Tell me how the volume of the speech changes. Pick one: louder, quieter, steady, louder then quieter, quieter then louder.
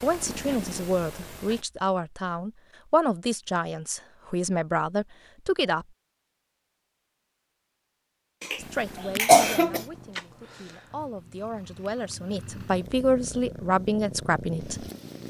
quieter then louder.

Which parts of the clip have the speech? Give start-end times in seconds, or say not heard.
0.0-5.8, 8.6-14.8.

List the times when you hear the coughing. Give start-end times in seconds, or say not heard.
8.4-9.8.